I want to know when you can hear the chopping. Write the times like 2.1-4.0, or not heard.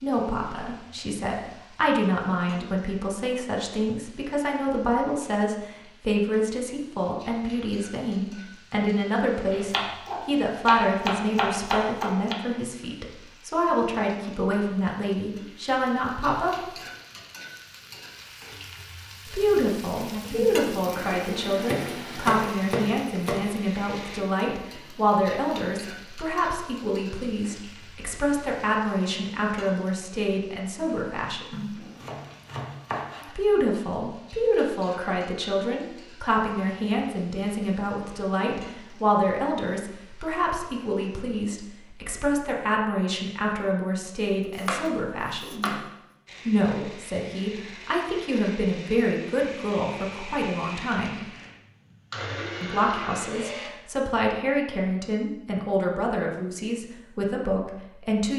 9.5-12.3, 21.6-23.5, 31.5-33.4, 44.4-45.9.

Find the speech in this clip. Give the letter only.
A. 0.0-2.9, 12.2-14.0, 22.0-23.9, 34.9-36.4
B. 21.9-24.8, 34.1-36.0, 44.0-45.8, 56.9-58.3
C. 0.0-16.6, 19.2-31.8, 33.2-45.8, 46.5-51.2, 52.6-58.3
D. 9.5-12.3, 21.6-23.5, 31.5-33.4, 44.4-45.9
C.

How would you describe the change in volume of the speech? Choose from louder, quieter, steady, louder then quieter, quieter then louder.
steady.